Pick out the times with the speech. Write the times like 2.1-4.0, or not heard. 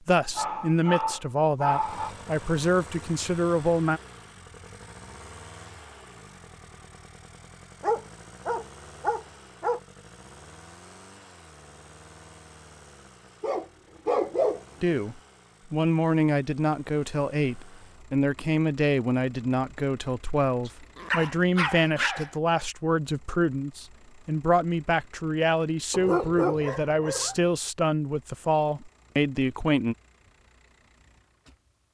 0.1-4.0, 14.8-29.9.